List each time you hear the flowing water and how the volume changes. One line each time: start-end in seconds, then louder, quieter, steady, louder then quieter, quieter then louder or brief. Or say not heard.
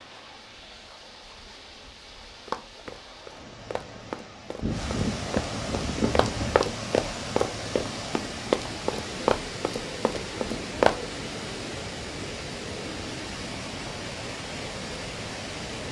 0.0-15.8 louder.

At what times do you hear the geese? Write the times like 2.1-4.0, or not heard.
4.6-6.7.